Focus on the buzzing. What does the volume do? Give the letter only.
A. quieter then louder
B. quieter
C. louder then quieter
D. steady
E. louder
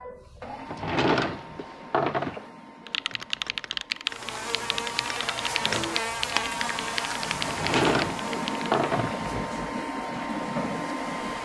B.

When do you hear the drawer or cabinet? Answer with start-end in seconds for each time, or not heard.
0.7-2.5, 7.5-9.2.